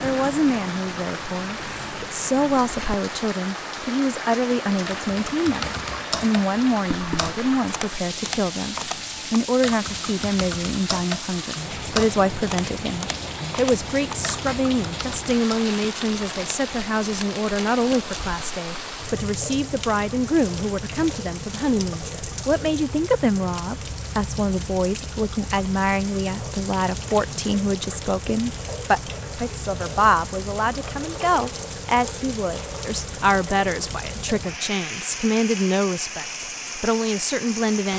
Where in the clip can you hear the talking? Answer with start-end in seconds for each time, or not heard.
0.0-37.9.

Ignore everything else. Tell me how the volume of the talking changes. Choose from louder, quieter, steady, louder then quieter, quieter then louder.
steady.